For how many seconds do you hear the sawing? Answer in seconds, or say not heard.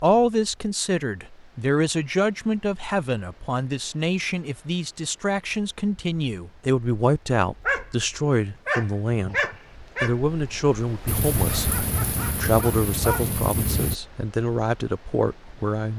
not heard.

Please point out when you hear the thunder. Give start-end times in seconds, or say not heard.
11.1-13.9.